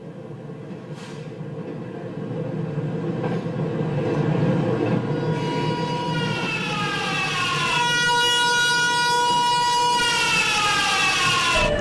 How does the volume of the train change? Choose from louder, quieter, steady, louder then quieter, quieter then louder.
louder then quieter.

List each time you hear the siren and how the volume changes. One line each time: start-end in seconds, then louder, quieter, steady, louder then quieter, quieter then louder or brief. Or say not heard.
5.0-11.7 louder.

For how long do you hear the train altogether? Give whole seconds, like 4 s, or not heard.
12 s.